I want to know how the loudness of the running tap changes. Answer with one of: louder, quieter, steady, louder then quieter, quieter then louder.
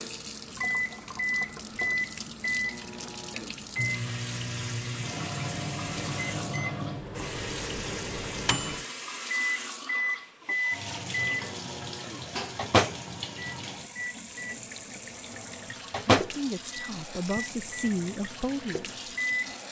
steady.